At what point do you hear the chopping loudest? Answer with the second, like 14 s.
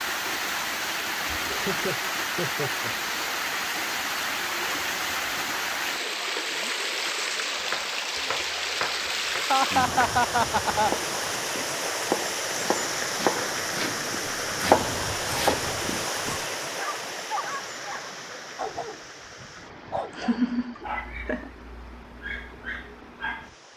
15 s.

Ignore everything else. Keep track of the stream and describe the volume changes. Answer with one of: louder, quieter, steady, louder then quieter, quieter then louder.
quieter.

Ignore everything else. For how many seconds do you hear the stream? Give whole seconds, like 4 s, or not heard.
24 s.